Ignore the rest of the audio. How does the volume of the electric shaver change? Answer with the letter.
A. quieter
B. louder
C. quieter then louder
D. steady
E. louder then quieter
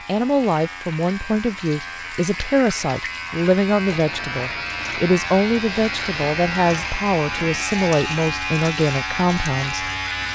B.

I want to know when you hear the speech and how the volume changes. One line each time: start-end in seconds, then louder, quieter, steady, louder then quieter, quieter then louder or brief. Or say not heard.
0.1-9.9 steady.